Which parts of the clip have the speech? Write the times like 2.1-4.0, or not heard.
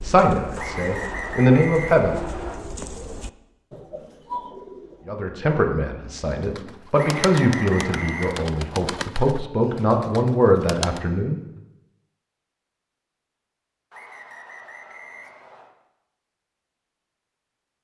0.0-2.2, 5.0-11.4.